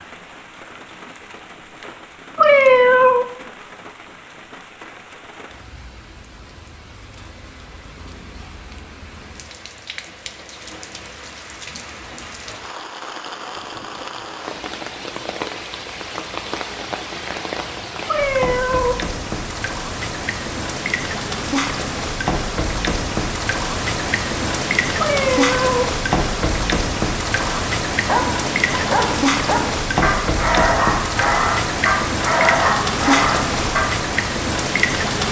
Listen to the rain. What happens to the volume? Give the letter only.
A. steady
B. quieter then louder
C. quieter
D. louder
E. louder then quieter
D.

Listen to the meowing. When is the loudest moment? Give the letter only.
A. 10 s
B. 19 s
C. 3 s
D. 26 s
C.